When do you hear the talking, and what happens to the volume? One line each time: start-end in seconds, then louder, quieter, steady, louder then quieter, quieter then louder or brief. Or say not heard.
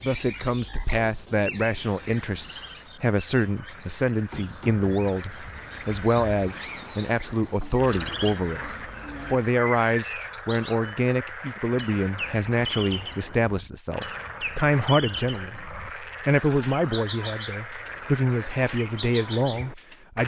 0.0-20.2 steady.